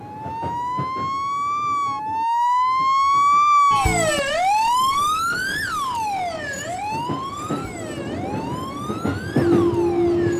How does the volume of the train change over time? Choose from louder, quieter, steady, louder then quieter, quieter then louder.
quieter then louder.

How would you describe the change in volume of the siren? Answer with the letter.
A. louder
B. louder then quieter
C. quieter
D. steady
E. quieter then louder
B.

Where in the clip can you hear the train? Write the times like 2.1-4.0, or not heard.
0.0-10.3.